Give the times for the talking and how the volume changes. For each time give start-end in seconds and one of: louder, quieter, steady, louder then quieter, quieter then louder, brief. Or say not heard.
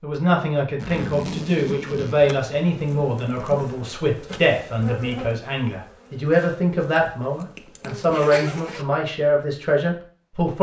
0.0-10.5 steady.